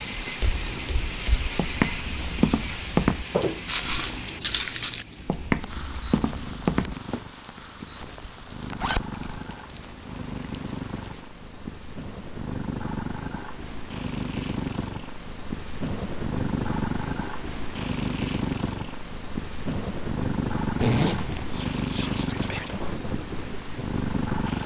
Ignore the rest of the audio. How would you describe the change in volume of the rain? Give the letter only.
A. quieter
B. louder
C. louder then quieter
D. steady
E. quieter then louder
E.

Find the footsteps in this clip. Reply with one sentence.
The footsteps can be heard from 0.2 to 7.2 s.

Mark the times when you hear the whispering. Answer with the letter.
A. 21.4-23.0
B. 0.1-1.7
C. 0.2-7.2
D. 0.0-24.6
A.